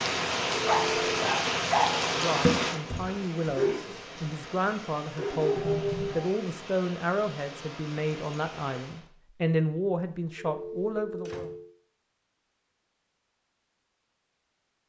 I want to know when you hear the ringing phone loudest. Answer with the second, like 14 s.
1 s.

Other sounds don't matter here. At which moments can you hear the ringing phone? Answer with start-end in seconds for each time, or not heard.
0.6-1.3, 10.3-11.7.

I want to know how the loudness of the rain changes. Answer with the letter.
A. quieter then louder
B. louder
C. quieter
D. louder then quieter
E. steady
C.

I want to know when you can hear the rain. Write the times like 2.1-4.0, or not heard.
0.0-9.1.